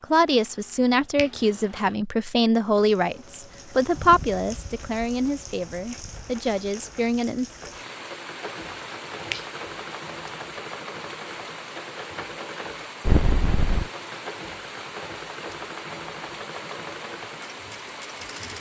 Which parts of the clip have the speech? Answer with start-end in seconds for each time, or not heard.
0.0-7.5.